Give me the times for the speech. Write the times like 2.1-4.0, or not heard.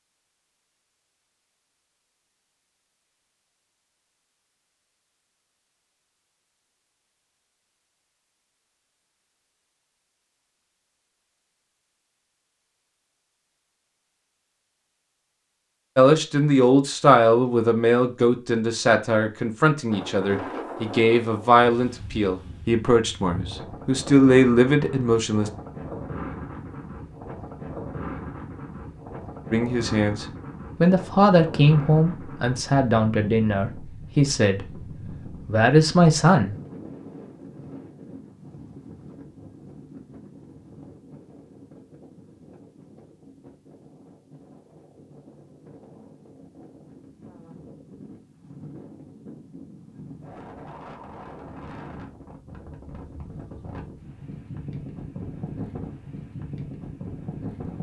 15.9-25.5, 29.5-36.5.